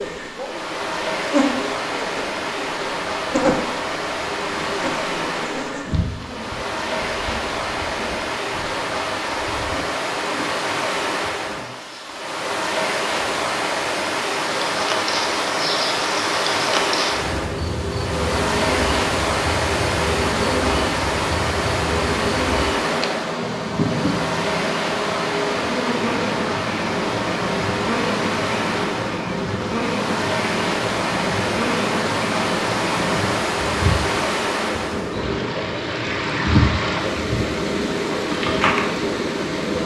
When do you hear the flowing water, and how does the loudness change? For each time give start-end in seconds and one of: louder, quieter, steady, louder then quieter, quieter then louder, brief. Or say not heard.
0.0-39.8 steady.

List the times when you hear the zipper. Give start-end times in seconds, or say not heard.
not heard.